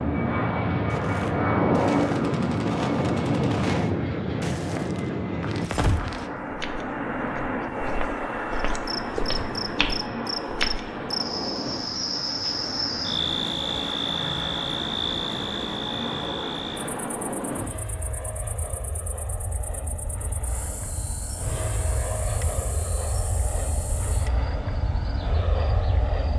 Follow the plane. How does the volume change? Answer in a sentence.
The loudness of the plane goes down.